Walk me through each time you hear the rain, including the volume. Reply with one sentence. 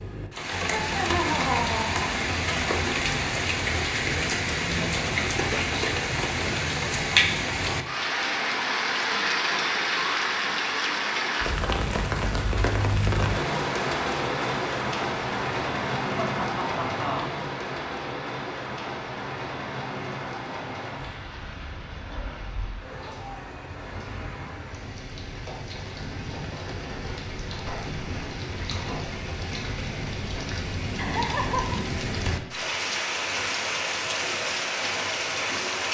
You can hear the rain from 0.0 to 35.9 s, getting quieter then louder.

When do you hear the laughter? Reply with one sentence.
You can hear the laughter from 0.6 to 2.1 s, from 16.1 to 17.4 s and from 30.9 to 31.8 s.